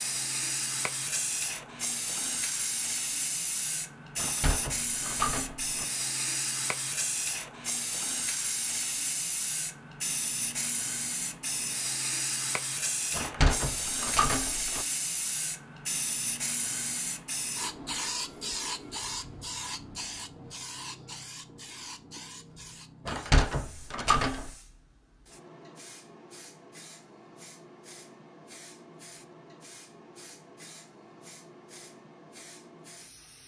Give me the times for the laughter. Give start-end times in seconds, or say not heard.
not heard.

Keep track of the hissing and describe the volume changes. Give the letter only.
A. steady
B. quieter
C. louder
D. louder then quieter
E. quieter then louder
B.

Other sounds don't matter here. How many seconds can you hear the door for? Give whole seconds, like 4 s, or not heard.
5 s.